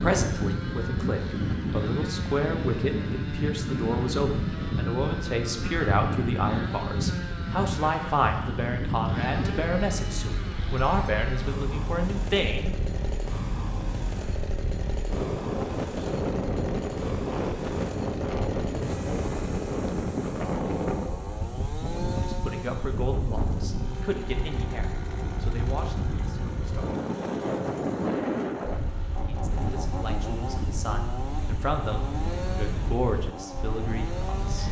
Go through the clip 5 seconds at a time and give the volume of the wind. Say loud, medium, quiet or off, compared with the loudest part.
loud, loud, medium, loud, loud, loud, medium.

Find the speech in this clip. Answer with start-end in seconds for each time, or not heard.
0.0-12.8, 22.2-26.9, 29.2-34.6.